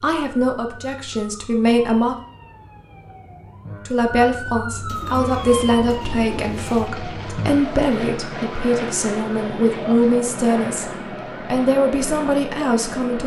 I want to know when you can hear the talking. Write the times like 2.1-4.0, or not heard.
0.0-2.1, 3.9-10.9, 11.5-13.2.